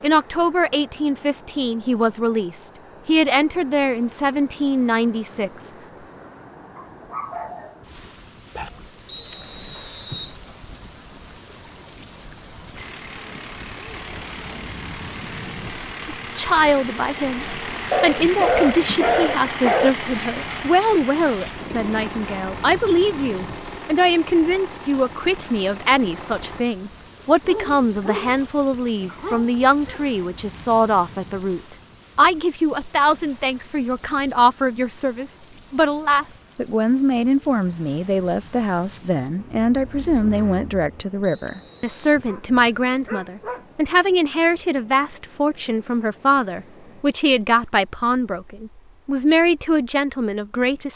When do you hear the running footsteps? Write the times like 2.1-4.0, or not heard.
not heard.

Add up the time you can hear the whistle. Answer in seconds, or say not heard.
2 s.